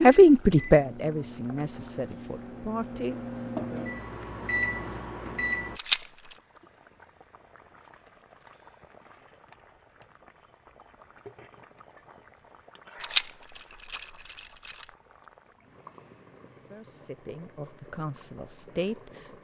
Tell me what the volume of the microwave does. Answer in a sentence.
The volume of the microwave goes up.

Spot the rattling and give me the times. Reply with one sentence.
The rattling can be heard from 5.8 to 6.3 s and from 13.0 to 14.8 s.